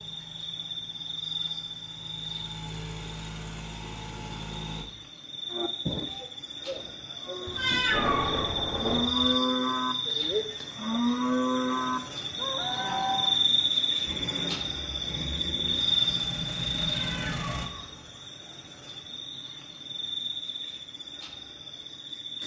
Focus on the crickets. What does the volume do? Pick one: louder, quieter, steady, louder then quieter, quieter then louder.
louder then quieter.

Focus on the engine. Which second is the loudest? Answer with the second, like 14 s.
17 s.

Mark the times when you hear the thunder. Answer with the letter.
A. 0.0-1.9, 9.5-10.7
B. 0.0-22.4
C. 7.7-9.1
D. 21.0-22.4
C.